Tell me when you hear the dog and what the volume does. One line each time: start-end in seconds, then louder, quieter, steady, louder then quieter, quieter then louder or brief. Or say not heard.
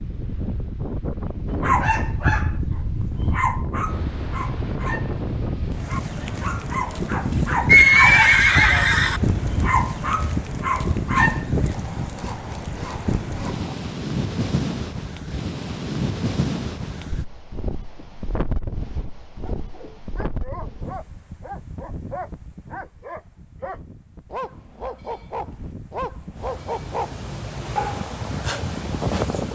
1.5-11.8 quieter then louder
19.4-29.4 louder.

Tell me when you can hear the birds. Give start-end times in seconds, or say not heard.
not heard.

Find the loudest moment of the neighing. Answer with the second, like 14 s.
8 s.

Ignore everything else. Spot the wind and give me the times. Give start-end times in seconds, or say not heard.
0.0-29.4.